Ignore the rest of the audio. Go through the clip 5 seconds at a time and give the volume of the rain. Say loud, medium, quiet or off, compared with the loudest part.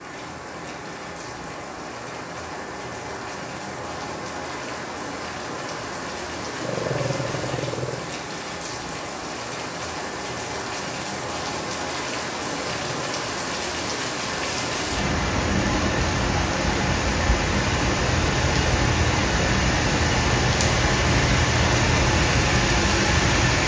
quiet, medium, medium, loud, loud.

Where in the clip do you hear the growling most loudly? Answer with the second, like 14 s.
7 s.